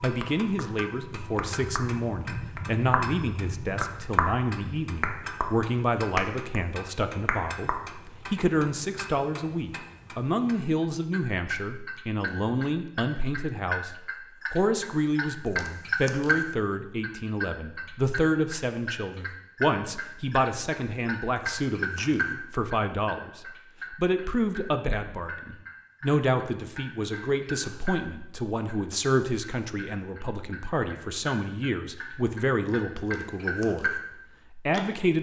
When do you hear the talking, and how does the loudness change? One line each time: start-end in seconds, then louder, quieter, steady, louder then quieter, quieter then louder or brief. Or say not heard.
0.0-35.1 steady.